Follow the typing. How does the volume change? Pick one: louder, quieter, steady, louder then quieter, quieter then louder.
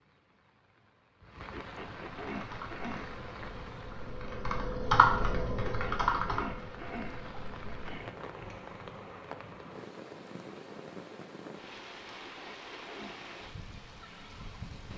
louder then quieter.